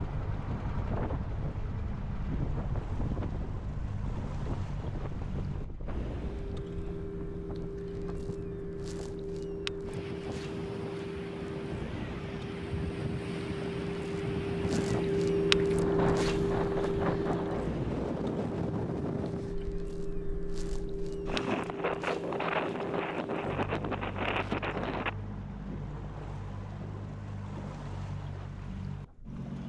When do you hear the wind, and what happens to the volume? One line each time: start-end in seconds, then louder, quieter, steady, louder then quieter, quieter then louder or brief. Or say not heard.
0.0-25.1 quieter then louder.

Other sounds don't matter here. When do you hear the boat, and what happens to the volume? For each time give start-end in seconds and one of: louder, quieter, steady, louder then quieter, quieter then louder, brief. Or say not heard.
0.0-29.6 louder then quieter.